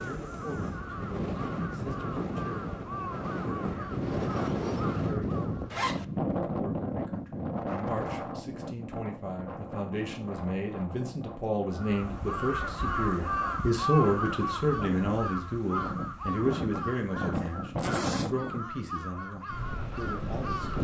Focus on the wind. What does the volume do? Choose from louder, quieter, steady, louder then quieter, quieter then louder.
quieter then louder.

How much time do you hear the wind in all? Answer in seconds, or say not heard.
21 s.